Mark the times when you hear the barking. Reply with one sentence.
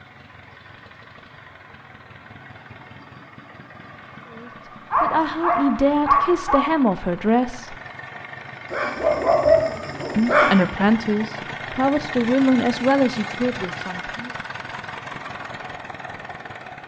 The barking can be heard from 4.9 to 6.7 s and from 8.7 to 10.6 s.